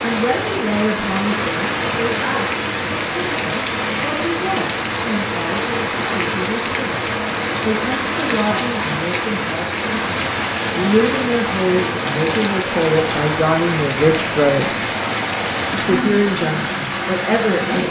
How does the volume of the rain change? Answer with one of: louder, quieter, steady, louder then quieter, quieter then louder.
steady.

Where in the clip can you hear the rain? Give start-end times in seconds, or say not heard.
0.0-17.8.